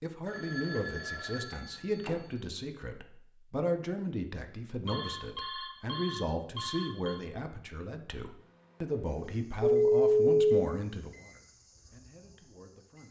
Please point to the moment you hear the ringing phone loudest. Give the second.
10 s.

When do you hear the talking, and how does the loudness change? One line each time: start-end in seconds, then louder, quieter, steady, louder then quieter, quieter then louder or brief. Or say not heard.
0.0-13.0 steady.